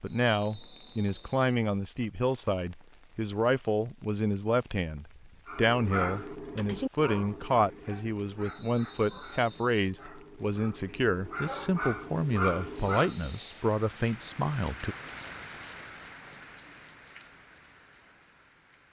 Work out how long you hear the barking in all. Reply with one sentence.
The barking can be heard for 8 seconds in total.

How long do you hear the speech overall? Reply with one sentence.
You can hear the speech for 15 seconds altogether.